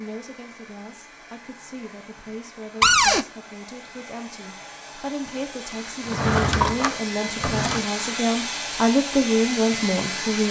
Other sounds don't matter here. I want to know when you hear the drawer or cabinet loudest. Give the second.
3 s.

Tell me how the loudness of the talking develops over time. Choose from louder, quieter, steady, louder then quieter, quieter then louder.
louder.